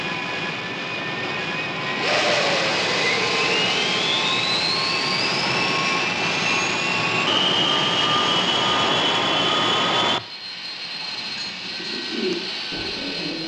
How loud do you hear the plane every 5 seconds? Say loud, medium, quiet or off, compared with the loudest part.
loud, loud, medium.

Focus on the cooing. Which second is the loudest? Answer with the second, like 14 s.
12 s.